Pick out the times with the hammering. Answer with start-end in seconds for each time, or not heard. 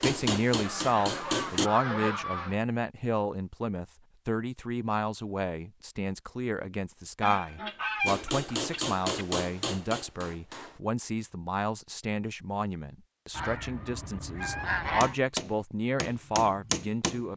0.0-1.7, 8.1-10.8, 15.0-17.3.